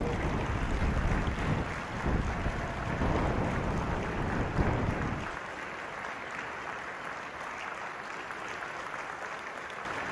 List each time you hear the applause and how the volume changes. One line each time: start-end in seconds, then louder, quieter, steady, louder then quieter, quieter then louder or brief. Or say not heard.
0.0-10.0 steady.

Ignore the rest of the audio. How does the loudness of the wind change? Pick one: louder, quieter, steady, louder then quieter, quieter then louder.
steady.